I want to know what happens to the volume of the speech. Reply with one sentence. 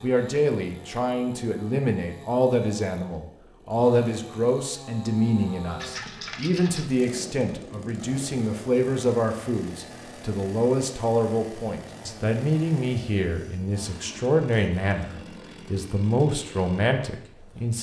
The volume of the speech stays about the same.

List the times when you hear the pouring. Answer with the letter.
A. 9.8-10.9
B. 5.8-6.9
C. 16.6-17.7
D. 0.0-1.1
B.